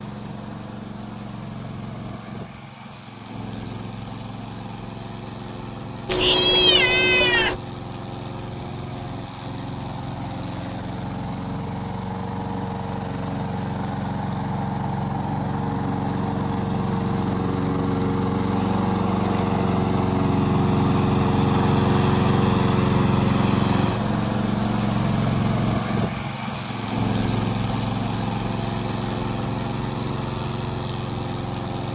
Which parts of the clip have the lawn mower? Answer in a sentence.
You can hear the lawn mower from 0.0 to 31.9 s.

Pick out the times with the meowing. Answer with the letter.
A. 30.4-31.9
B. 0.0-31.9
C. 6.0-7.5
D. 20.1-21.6
C.